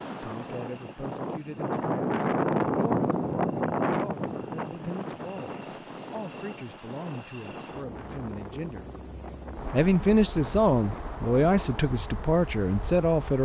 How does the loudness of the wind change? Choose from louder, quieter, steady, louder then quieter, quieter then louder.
quieter.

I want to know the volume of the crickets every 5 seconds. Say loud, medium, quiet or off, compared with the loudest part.
medium, loud, quiet.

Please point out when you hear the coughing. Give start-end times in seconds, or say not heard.
not heard.